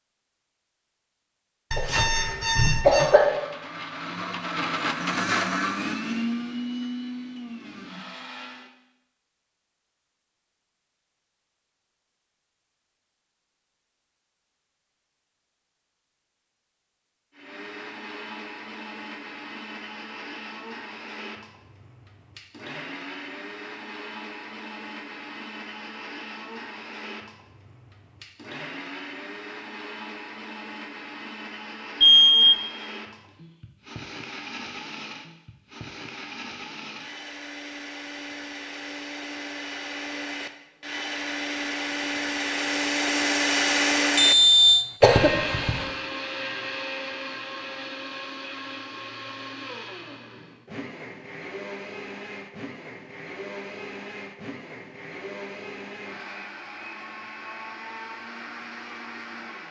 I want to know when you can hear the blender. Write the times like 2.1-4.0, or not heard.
3.0-8.7, 17.3-59.6.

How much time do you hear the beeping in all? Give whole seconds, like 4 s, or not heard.
3 s.